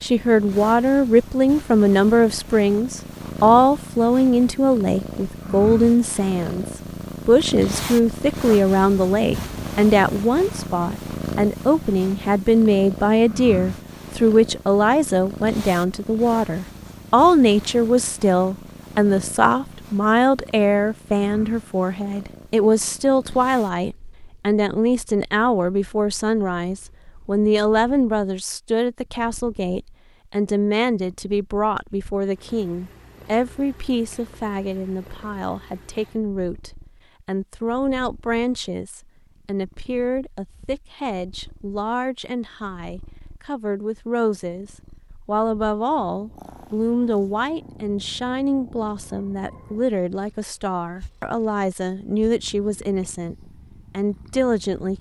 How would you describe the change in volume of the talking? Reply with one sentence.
The volume of the talking goes down.